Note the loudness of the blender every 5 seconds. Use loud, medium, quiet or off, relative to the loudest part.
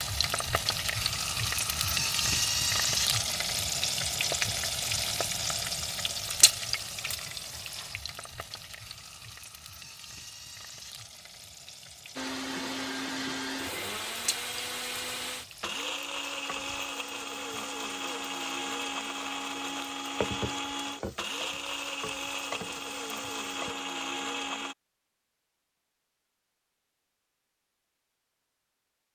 off, off, loud, loud, loud, off.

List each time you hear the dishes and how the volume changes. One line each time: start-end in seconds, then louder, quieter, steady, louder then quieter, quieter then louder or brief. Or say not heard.
not heard.